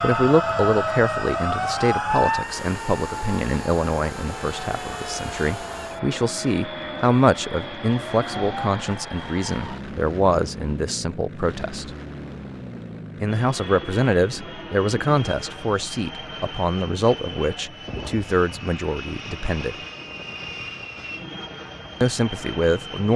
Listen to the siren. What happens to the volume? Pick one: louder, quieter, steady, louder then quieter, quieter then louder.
quieter.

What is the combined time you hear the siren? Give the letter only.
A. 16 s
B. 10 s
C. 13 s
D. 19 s
B.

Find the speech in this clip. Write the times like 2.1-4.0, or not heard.
0.0-11.9, 13.2-19.8, 22.0-23.1.